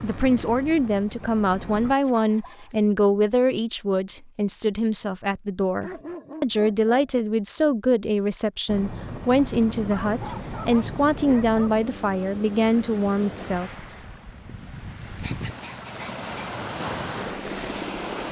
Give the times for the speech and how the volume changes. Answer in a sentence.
You can hear the speech from 0.0 to 13.7 s, at a steady volume.